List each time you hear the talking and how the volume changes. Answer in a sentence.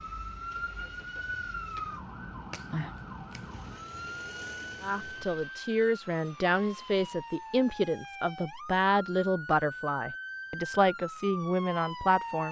The talking can be heard from 4.8 to 12.4 s, at a steady volume.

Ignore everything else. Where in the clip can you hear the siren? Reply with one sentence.
The siren can be heard from 0.0 to 12.4 s.